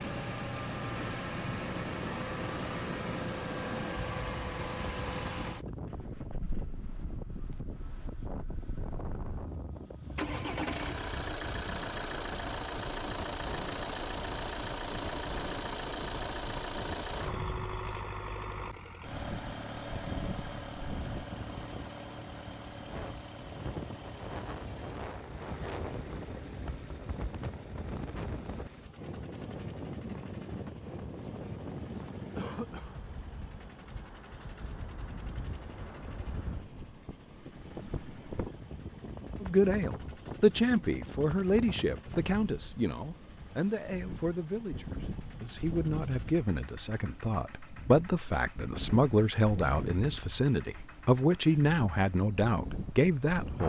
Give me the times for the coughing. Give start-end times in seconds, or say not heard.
32.4-33.0.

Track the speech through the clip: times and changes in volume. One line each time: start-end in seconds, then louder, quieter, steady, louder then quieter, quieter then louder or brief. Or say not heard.
39.4-53.6 quieter then louder.